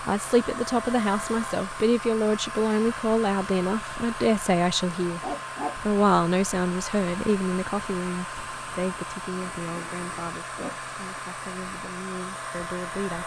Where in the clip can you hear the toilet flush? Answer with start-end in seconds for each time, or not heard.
not heard.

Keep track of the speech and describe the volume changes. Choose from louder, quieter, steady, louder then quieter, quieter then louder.
quieter.